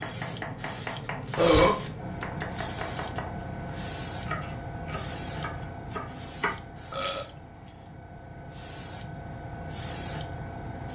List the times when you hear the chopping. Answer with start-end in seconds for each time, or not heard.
0.0-6.5.